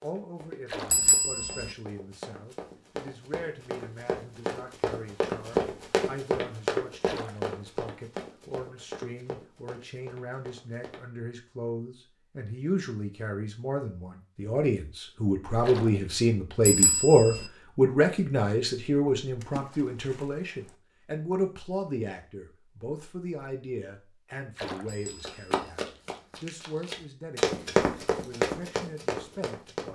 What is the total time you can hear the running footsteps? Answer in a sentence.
The running footsteps can be heard for 16 seconds in total.